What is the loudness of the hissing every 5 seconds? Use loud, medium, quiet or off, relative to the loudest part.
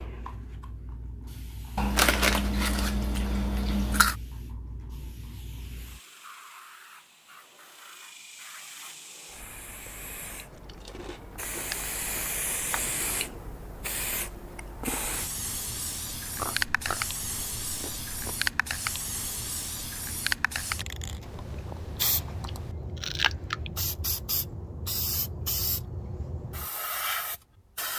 quiet, quiet, loud, loud, loud, loud.